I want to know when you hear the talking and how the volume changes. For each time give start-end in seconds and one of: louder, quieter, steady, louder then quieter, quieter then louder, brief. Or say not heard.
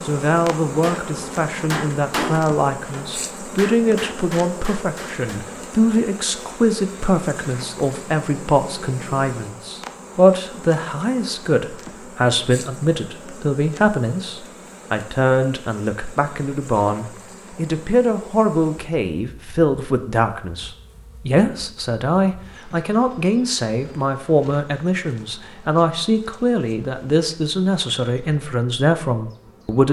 0.1-29.8 steady.